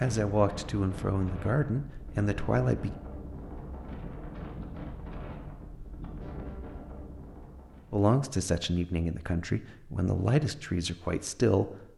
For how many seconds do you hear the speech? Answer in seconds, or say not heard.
7 s.